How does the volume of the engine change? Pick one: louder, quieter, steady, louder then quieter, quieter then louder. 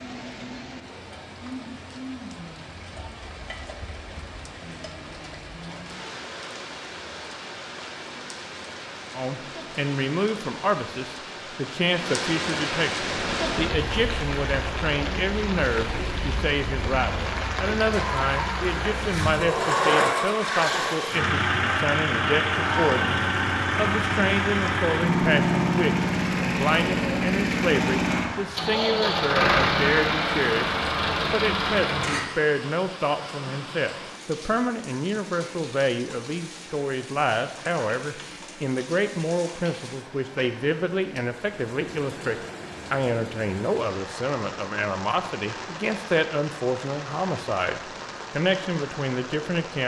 louder.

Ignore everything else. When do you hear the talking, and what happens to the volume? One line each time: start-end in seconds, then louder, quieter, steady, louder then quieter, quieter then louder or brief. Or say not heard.
9.1-49.8 steady.